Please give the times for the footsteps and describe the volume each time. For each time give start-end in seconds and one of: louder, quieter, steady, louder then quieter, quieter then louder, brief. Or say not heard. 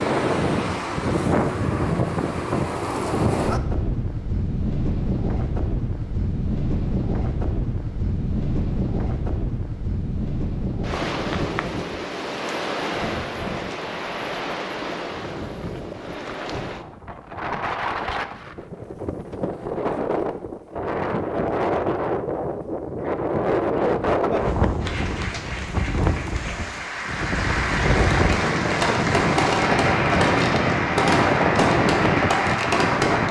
not heard.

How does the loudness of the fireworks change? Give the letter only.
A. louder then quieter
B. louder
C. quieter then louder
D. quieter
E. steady
E.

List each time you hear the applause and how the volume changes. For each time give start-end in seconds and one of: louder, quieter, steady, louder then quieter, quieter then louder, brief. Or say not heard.
24.8-33.2 louder.